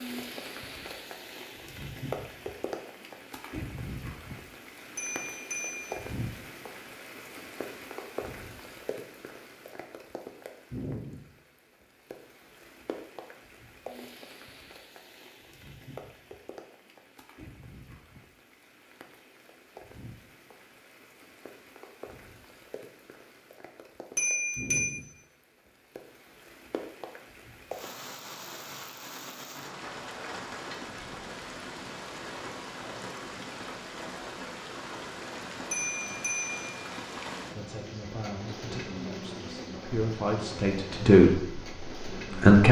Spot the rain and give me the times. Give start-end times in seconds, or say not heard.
0.0-42.6.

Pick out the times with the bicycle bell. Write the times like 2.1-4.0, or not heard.
5.0-6.0, 24.1-24.9, 35.7-36.8.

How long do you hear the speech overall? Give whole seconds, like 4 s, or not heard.
5 s.